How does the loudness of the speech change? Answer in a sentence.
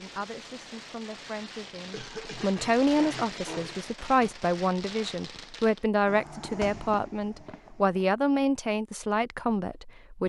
The loudness of the speech goes up.